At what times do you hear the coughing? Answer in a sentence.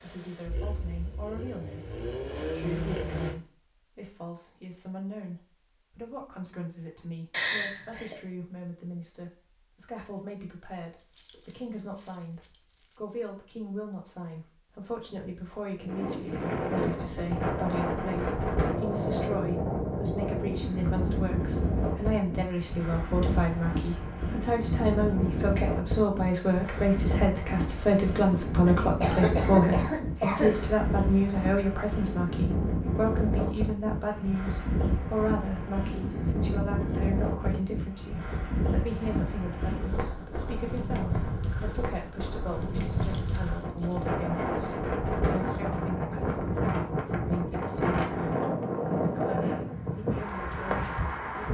You can hear the coughing from 7.3 to 8.2 s and from 28.6 to 30.6 s.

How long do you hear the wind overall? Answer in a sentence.
The wind can be heard for 36 seconds in total.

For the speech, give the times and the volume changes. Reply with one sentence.
You can hear the speech from 0.0 to 51.5 s, getting louder then quieter.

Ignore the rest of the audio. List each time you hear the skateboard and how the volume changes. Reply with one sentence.
You can't hear the skateboard here.